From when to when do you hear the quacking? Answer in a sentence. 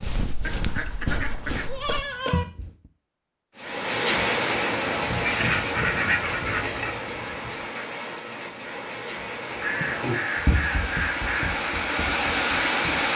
The quacking can be heard from 0.5 to 2.5 s, from 5.2 to 7.0 s and from 9.6 to 11.6 s.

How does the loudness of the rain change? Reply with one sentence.
The volume of the rain goes down, then up.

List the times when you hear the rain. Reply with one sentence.
You can hear the rain from 3.5 to 13.1 s.